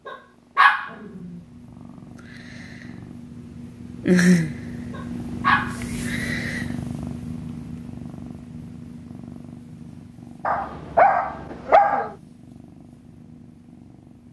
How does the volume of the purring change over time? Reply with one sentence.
The loudness of the purring goes up, then down.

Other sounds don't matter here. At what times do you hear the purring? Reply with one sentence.
The purring can be heard from 0.0 to 14.2 s.